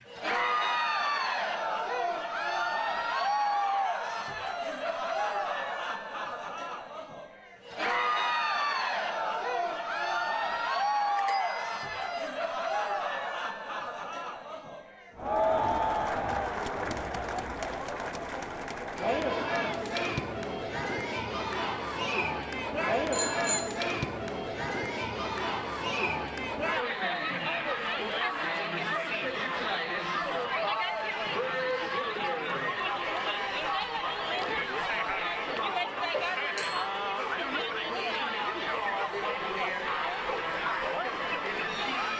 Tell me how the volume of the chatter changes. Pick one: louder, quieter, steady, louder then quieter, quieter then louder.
steady.